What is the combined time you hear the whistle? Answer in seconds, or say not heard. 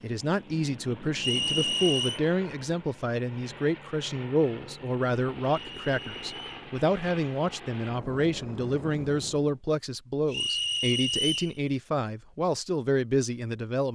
3 s.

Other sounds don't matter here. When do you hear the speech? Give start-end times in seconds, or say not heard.
0.0-13.9.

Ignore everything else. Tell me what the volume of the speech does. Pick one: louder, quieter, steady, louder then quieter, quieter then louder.
steady.